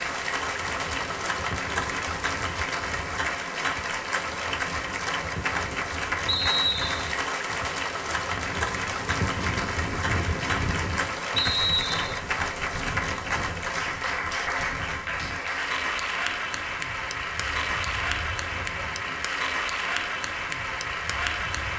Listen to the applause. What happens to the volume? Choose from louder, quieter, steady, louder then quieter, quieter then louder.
steady.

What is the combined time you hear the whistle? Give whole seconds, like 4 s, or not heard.
2 s.